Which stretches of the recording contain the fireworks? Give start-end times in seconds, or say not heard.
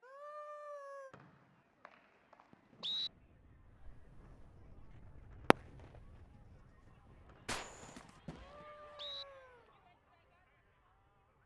2.5-6.0, 7.5-8.7.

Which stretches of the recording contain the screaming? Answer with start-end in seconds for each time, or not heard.
0.0-1.1, 8.3-9.7.